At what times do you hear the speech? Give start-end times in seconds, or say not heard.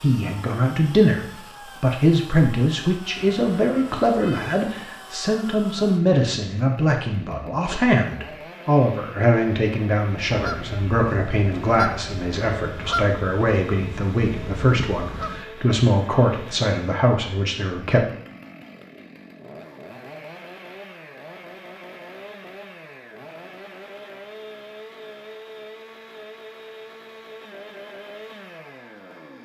0.0-18.1.